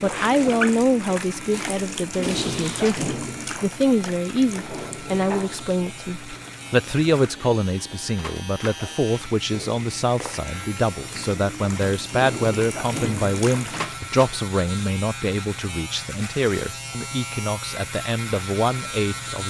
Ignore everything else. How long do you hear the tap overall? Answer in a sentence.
You can hear the tap for 14 seconds altogether.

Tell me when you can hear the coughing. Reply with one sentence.
The coughing can't be heard in this clip.